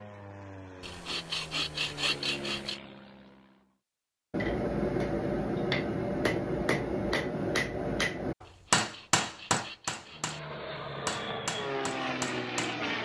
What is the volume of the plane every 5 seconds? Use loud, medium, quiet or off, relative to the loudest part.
medium, off, loud.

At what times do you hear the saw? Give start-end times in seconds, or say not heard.
0.8-2.8, 8.4-10.6.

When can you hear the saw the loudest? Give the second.
2 s.